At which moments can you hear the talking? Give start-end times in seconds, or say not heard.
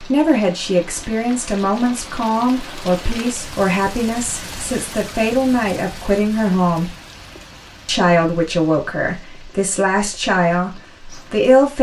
0.0-6.9, 7.8-11.7.